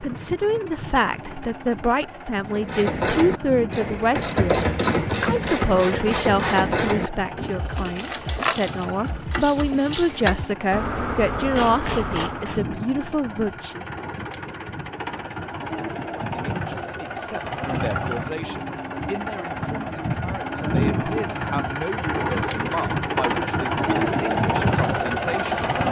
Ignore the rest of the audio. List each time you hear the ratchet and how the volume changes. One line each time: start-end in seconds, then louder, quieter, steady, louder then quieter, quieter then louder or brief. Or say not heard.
2.5-12.7 steady
24.2-25.8 brief.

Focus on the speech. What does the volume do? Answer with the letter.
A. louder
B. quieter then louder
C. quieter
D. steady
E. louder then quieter
C.